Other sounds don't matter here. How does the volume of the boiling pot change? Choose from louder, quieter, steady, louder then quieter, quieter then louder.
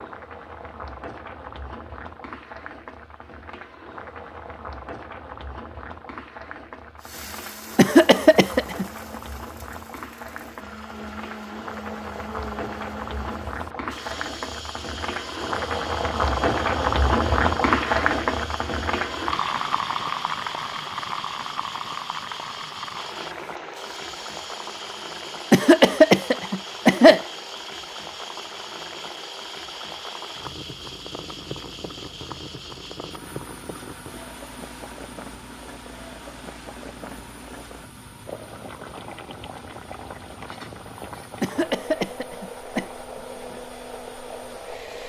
louder then quieter.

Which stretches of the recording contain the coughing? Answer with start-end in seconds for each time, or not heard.
7.8-8.8, 25.5-27.2, 41.4-42.9.